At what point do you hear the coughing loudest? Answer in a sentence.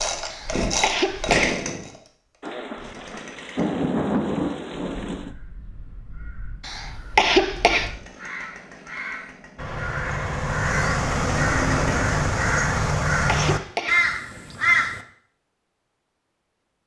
The volume of the coughing peaks at 7 seconds.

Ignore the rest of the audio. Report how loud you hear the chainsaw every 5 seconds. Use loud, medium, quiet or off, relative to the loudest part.
loud, quiet, loud, off.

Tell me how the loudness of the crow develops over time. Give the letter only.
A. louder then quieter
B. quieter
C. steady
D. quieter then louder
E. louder
E.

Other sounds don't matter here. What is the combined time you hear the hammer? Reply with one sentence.
The hammer can't be heard in this clip.